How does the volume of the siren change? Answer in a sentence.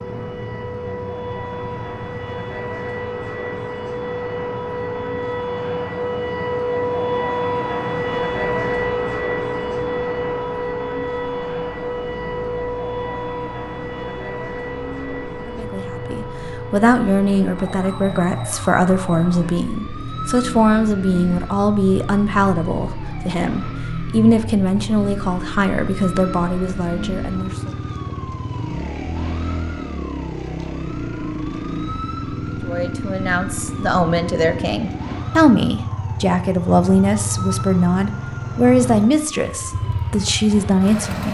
The loudness of the siren goes down.